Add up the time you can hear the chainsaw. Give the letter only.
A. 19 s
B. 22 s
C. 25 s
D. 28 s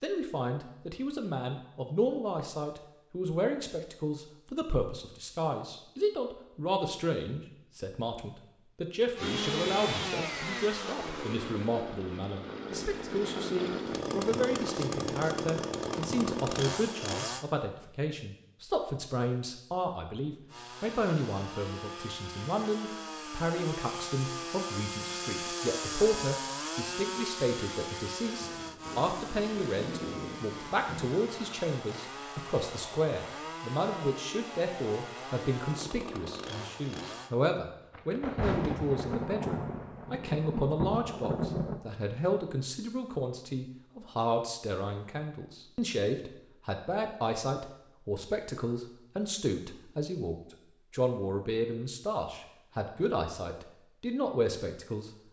C.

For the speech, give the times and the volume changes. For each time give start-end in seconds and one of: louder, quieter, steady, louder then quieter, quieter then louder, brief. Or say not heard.
0.0-55.1 steady.